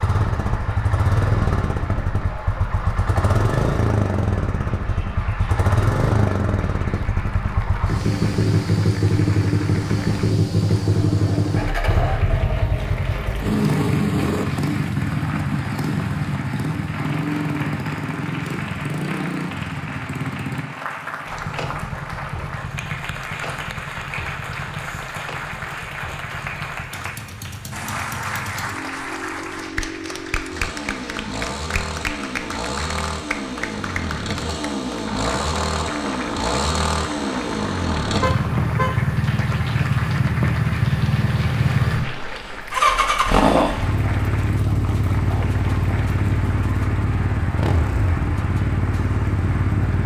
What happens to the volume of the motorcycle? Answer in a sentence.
The volume of the motorcycle goes down, then up.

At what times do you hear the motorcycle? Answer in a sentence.
You can hear the motorcycle from 0.0 to 50.0 s.